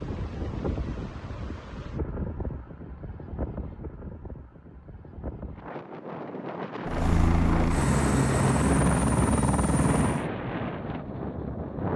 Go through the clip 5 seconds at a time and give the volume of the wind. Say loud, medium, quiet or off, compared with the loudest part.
medium, loud, loud.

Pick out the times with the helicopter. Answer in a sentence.
You can hear the helicopter from 6.8 to 10.3 s.